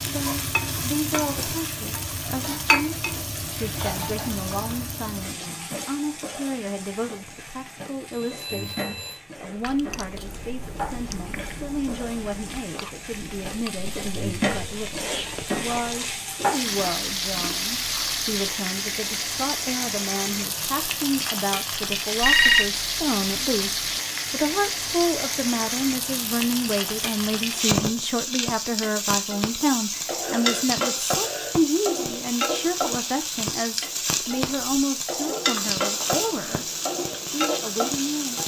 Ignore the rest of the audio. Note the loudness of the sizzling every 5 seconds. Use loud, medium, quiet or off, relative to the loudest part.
loud, medium, medium, loud, loud, loud, loud, loud.